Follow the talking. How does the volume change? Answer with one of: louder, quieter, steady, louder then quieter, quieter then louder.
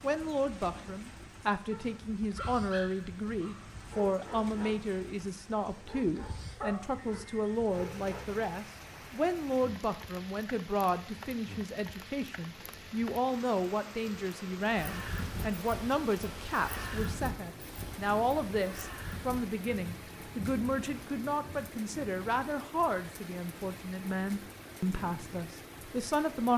steady.